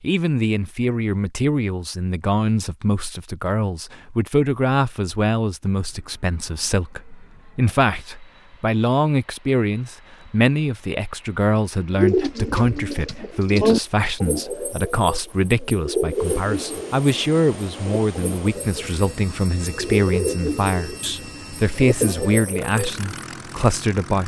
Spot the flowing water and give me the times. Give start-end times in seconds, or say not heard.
not heard.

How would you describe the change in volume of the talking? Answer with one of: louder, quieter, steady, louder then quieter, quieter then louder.
steady.